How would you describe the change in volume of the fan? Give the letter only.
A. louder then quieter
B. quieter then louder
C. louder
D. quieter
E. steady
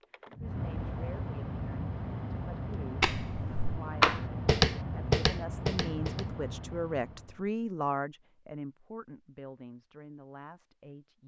E.